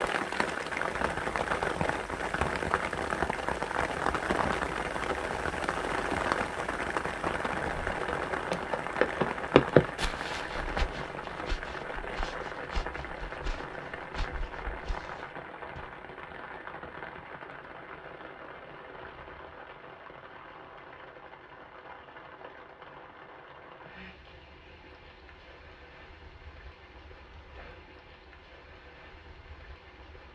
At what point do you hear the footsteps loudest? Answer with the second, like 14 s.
10 s.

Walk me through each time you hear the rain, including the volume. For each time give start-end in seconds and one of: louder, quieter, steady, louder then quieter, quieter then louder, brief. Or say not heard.
0.0-30.3 quieter.